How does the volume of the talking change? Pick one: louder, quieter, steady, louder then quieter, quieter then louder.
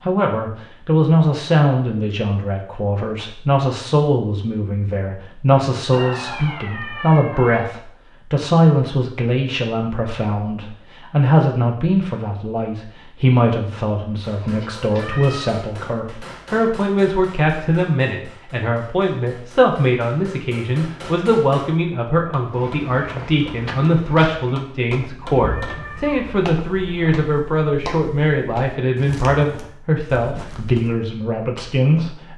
steady.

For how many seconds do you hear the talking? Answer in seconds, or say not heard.
32 s.